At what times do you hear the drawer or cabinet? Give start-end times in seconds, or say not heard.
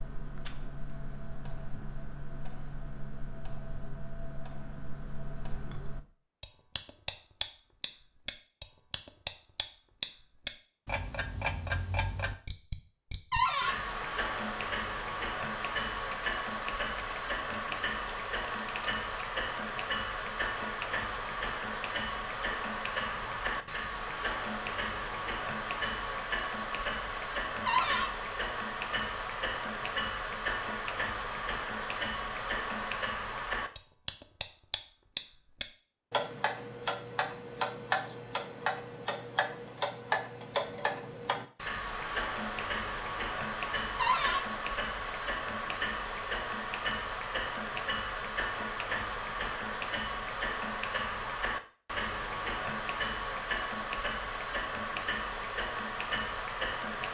13.3-13.8, 27.6-28.1, 44.0-44.5.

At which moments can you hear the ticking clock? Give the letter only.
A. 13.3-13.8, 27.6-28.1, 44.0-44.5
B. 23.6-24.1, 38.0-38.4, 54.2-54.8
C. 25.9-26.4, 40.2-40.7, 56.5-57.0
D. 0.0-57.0
D.